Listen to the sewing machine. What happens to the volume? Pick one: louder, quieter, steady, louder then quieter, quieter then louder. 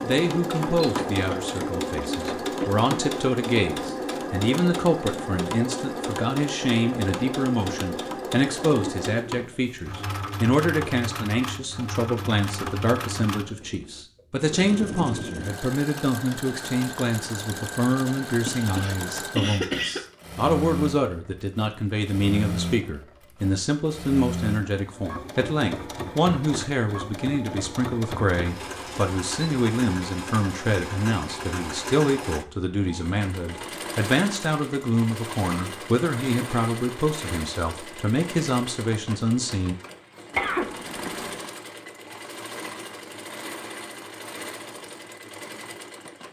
quieter.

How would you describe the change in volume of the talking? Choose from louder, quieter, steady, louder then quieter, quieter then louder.
steady.